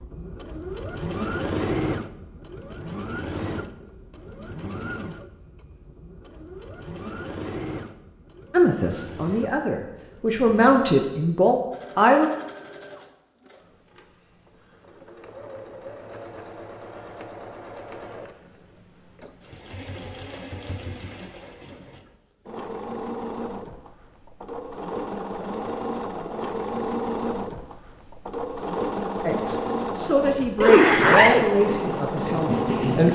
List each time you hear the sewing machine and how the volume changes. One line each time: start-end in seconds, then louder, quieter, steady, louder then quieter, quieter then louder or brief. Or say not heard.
0.0-33.0 quieter then louder.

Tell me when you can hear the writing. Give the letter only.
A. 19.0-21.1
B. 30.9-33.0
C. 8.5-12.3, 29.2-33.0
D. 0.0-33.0
B.